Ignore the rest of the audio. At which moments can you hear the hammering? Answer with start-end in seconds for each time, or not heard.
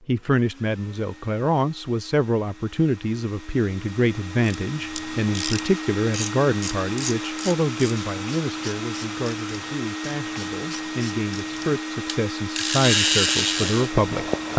not heard.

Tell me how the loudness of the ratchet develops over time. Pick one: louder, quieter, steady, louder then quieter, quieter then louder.
quieter then louder.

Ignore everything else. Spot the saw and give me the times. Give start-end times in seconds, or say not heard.
12.9-14.5.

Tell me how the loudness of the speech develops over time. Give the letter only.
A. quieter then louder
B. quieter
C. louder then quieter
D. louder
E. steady
A.